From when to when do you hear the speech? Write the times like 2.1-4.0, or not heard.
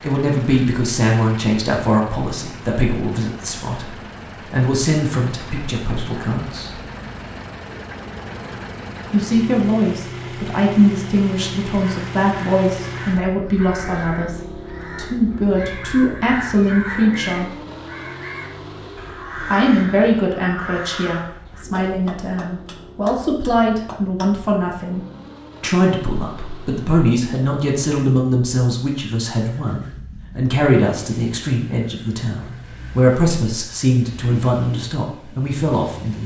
0.0-6.8, 9.1-17.6, 19.5-25.0, 25.6-36.2.